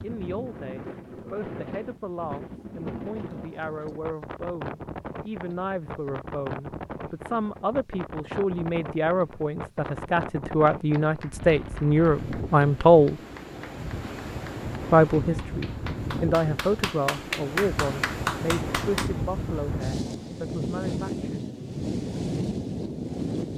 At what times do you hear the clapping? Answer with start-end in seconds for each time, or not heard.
10.7-19.1.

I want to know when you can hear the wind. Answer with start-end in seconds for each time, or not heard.
0.0-23.5.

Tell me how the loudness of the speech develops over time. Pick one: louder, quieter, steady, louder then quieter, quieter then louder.
louder then quieter.